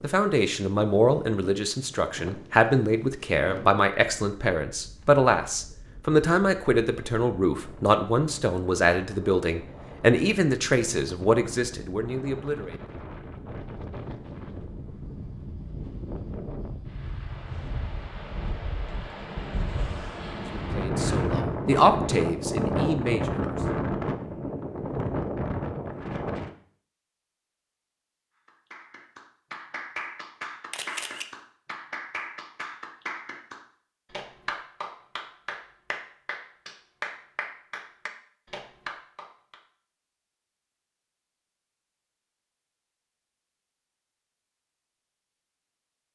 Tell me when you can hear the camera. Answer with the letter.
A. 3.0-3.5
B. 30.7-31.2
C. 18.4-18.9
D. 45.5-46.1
B.